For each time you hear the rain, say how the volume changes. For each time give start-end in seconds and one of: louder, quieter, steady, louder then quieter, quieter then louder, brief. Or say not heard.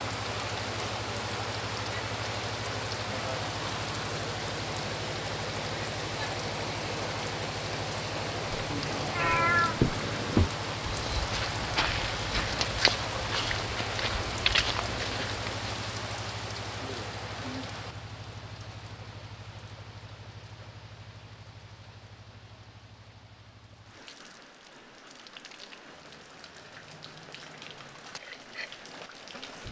0.0-29.6 quieter.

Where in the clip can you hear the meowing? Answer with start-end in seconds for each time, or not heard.
8.7-10.5.